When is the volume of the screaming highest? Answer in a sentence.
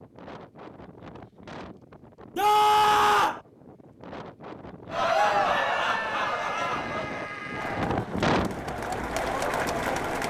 The volume of the screaming peaks at 3 seconds.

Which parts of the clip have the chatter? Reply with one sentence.
You can hear the chatter from 4.9 to 10.2 s.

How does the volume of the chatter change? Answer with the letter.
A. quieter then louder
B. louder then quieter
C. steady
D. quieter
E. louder
A.